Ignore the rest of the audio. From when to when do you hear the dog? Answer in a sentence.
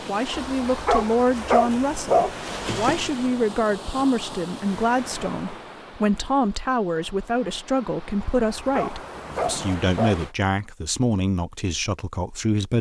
You can hear the dog from 0.3 to 3.1 s and from 8.3 to 10.2 s.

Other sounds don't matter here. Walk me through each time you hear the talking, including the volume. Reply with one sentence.
You can hear the talking from 0.1 to 12.7 s, at a steady volume.